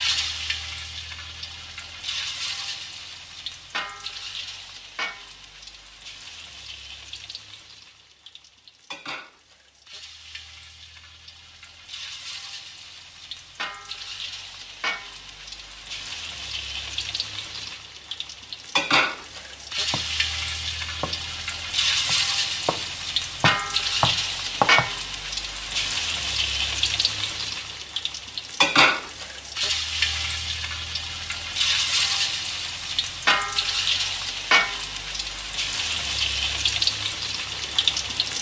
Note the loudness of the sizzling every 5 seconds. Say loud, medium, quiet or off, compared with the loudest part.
medium, quiet, quiet, medium, loud, loud, loud, loud.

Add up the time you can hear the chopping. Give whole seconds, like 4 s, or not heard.
4 s.